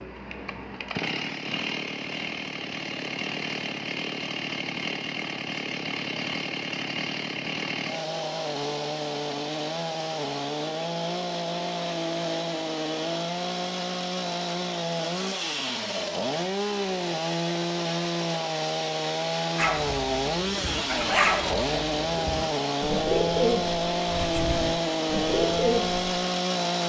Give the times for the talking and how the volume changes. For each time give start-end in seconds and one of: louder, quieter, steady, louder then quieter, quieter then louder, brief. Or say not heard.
not heard.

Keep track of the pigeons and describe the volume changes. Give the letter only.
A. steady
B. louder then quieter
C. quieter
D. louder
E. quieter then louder
D.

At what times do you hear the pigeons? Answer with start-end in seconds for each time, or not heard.
19.6-26.1.